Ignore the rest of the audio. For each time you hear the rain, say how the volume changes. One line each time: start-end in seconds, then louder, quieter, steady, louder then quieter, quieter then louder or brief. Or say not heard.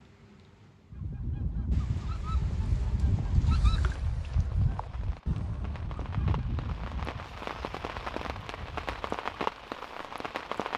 0.0-10.7 louder.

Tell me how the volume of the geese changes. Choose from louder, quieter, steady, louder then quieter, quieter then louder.
quieter.